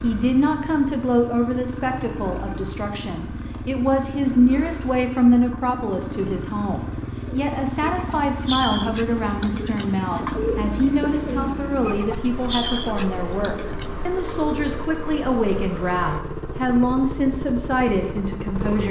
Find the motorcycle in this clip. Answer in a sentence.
You can hear the motorcycle from 0.0 to 18.8 s.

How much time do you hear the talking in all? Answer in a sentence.
The talking can be heard for 19 seconds in total.